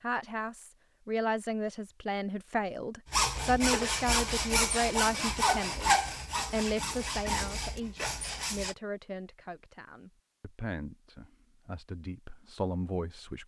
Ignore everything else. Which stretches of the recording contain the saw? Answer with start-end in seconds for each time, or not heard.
3.0-8.8.